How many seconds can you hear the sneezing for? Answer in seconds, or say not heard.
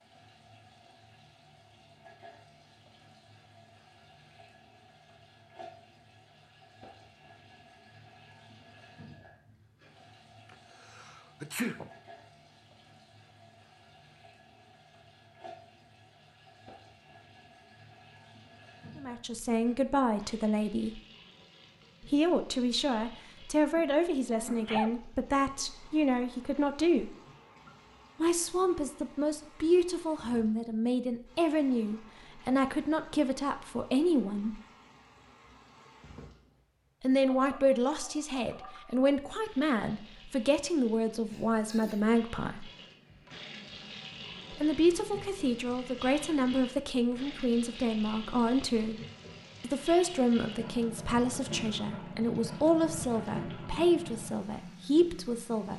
3 s.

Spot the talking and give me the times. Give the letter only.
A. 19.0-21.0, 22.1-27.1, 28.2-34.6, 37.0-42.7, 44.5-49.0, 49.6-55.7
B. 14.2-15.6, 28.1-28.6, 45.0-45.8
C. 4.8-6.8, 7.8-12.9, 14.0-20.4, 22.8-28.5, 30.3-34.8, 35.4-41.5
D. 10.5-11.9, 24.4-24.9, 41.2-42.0
A.